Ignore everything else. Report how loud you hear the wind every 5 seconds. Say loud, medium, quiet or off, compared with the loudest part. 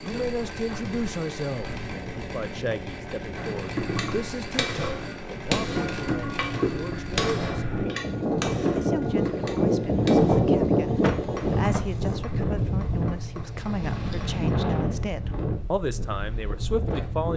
quiet, loud, loud, medium.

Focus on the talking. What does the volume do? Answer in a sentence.
The loudness of the talking goes down, then up.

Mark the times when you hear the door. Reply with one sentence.
The door can be heard from 11.0 to 11.8 s.